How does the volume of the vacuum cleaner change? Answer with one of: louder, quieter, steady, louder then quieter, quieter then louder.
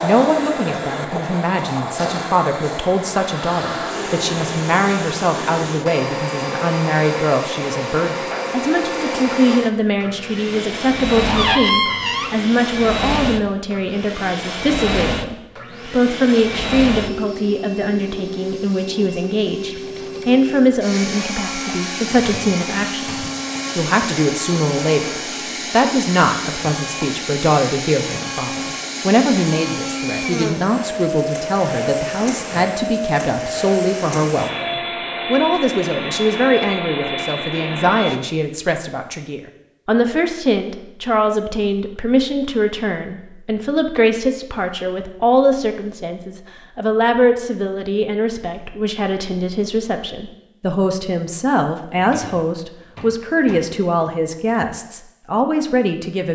steady.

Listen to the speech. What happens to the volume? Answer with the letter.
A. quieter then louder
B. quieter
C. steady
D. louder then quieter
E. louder
C.